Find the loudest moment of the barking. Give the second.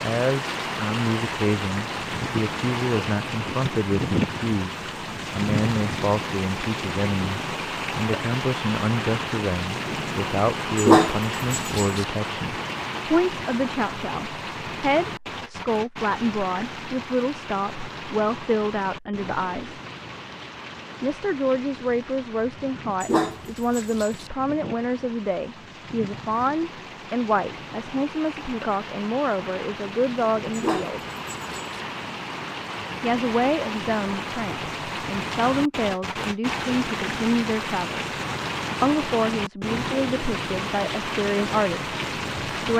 11 s.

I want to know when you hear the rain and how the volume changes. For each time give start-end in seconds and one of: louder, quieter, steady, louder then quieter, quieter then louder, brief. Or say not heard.
0.0-42.7 quieter then louder.